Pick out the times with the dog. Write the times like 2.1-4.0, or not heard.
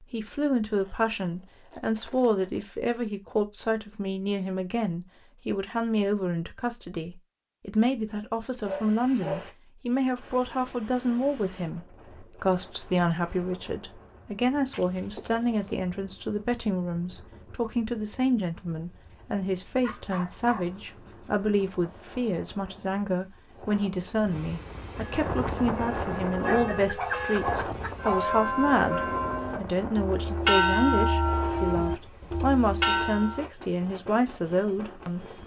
8.7-9.5, 19.8-21.5, 26.4-28.3.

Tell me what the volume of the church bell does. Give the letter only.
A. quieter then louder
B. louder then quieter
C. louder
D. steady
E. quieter
C.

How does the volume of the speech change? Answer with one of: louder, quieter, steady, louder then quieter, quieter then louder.
steady.